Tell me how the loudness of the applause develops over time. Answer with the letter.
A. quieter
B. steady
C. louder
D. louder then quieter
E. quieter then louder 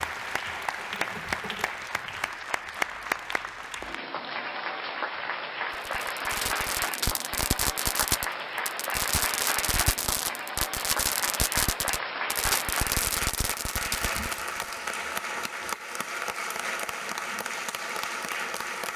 B.